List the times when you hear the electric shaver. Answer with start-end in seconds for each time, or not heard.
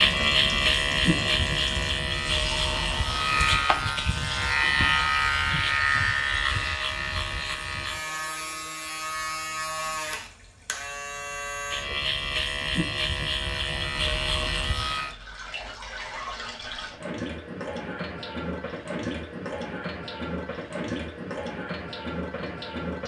0.0-15.1.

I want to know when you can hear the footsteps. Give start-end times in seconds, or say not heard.
not heard.